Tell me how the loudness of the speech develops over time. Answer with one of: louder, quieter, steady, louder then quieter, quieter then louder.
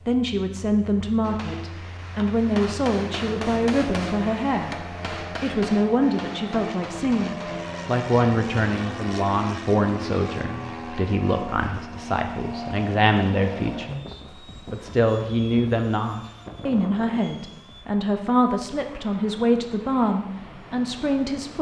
steady.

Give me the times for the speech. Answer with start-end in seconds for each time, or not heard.
0.1-4.8, 5.4-21.5.